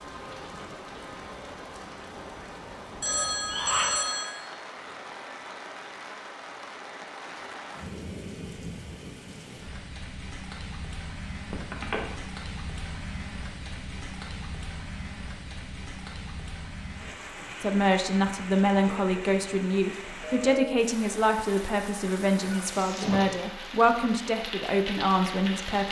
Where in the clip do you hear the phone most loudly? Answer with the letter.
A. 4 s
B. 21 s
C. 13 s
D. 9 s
A.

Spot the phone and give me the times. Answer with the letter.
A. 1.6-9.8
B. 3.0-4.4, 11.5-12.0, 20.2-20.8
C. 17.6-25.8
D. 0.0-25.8
B.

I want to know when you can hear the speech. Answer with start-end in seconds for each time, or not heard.
17.6-25.8.